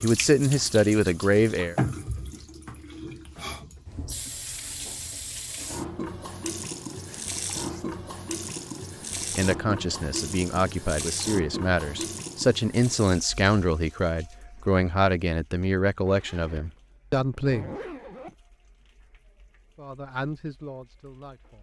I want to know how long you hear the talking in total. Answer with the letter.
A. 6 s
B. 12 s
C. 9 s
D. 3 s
B.